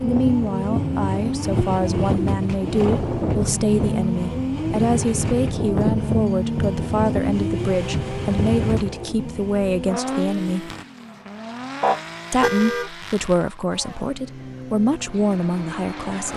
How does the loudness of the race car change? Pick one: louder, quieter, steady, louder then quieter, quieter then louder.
quieter.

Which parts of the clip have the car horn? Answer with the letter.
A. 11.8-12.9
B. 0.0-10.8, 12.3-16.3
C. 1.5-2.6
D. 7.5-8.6
A.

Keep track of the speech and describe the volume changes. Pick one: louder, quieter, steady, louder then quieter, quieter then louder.
steady.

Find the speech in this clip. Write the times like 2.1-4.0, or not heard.
0.0-10.8, 12.3-16.3.